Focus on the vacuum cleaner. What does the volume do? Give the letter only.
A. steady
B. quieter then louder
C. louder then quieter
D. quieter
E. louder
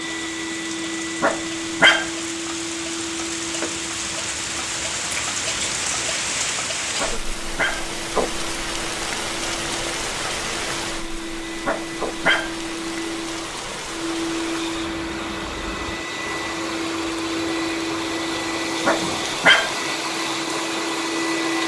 B.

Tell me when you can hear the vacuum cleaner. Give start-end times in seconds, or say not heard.
0.0-21.6.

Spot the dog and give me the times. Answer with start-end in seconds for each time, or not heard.
1.2-2.1, 7.0-7.8, 11.7-12.6, 18.9-19.8.